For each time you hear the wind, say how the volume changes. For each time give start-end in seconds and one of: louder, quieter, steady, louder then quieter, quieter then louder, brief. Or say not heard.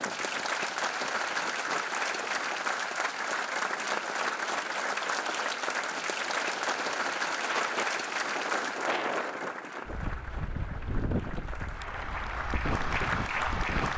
0.0-13.9 louder.